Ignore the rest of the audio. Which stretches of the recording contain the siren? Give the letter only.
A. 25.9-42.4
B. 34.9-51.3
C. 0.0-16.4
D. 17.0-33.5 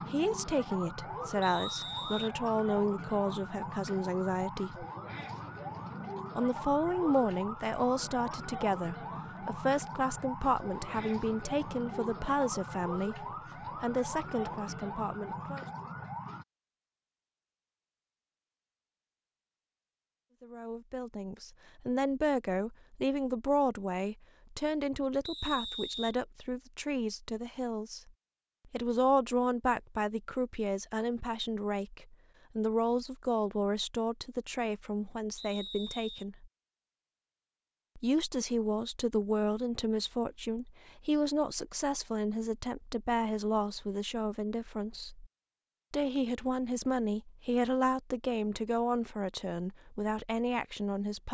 C.